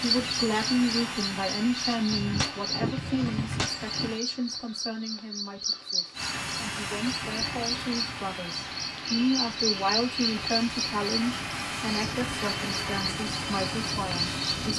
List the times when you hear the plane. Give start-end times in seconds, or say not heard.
0.0-4.2, 6.1-14.7.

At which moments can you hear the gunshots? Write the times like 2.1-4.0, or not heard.
2.0-4.1.